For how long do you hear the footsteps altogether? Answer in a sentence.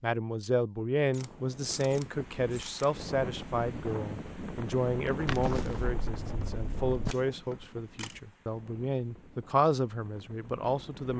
You can hear the footsteps for 2 seconds altogether.